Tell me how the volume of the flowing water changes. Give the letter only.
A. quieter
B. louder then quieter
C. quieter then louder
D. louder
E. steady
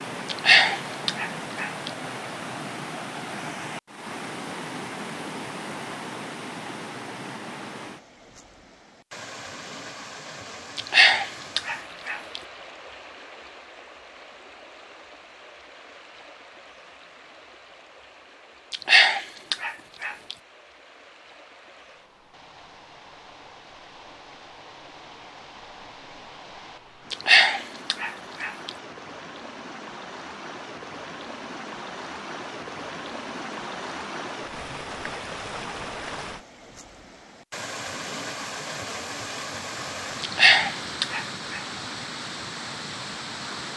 C.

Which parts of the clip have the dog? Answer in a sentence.
You can hear the dog from 0.3 to 1.9 s, from 10.8 to 12.4 s, from 18.7 to 20.4 s, from 27.1 to 28.7 s and from 40.2 to 41.6 s.